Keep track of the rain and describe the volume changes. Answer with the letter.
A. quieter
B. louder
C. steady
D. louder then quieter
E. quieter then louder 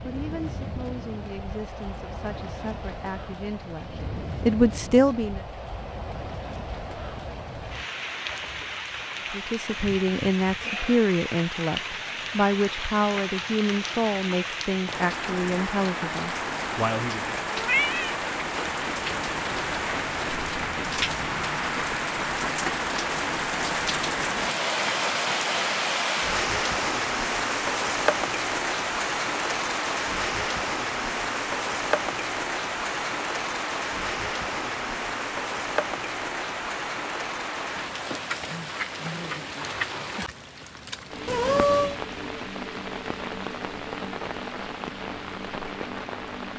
D.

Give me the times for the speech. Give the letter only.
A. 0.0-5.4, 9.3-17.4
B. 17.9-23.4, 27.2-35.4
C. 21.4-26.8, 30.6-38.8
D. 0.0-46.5
A.